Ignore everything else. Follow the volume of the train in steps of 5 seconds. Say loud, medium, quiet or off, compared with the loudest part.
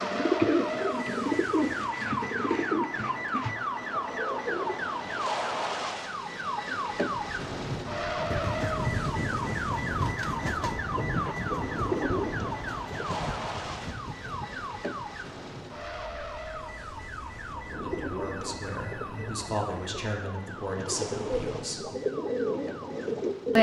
off, loud, loud, quiet, off.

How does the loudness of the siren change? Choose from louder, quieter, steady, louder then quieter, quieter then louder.
quieter.